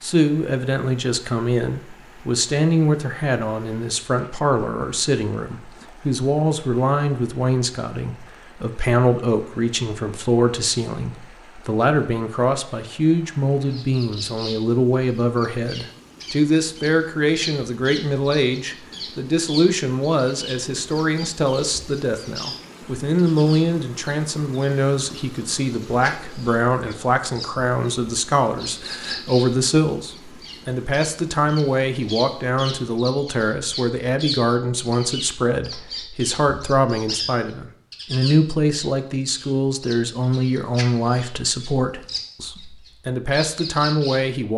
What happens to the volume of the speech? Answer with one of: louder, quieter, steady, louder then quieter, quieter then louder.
steady.